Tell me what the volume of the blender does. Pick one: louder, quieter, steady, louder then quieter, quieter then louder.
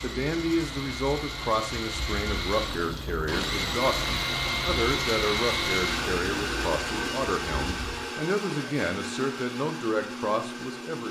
louder then quieter.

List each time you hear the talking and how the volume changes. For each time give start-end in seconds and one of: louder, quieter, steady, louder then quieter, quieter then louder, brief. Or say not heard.
0.0-11.0 steady.